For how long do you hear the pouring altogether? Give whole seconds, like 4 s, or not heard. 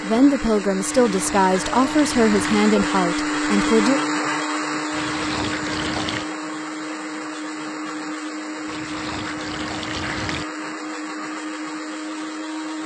5 s.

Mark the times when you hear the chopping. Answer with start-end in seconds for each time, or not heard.
not heard.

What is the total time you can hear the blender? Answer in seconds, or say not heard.
13 s.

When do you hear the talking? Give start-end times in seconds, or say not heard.
0.0-4.0.